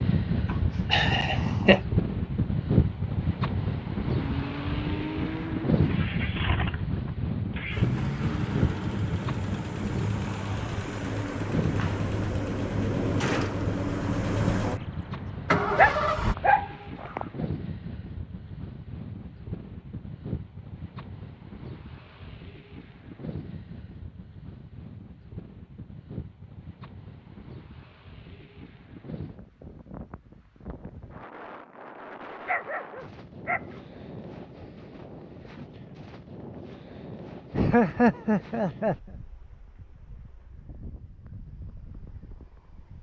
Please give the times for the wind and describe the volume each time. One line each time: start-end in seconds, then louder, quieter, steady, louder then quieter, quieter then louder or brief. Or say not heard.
0.0-42.9 quieter.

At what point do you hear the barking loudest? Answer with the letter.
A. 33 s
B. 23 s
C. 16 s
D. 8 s
C.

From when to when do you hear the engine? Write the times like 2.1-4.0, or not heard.
4.2-16.4.